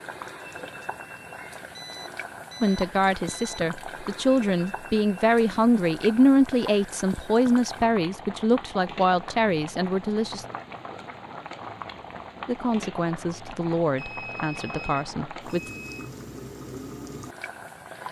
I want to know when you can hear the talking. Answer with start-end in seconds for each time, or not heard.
2.6-10.4, 12.4-15.7.